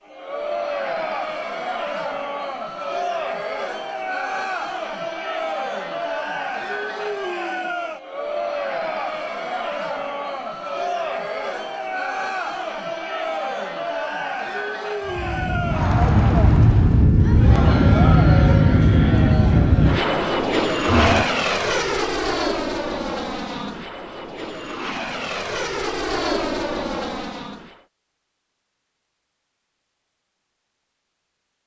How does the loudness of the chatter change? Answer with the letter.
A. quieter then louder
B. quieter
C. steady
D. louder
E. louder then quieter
C.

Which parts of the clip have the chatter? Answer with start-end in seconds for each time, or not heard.
0.1-21.2.